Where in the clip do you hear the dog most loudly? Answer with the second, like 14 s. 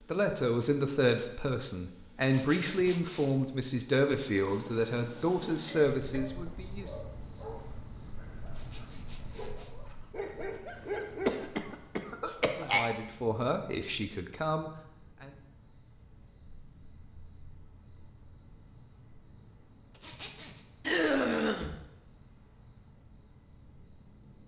11 s.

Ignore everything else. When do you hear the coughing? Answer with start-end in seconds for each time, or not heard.
5.7-6.3, 11.2-12.9, 20.9-21.8.